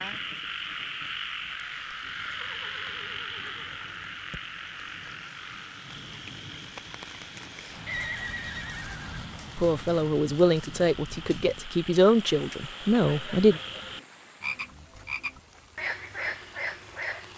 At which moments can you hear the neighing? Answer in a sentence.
You can hear the neighing from 2.0 to 4.1 s, from 7.8 to 9.2 s and from 12.9 to 14.0 s.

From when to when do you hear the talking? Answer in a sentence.
The talking can be heard from 9.6 to 13.6 s.